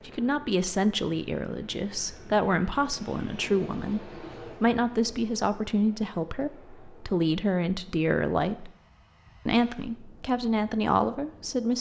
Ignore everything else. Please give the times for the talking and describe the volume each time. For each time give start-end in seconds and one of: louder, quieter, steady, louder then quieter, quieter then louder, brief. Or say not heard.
0.1-8.7 steady
9.4-11.7 brief.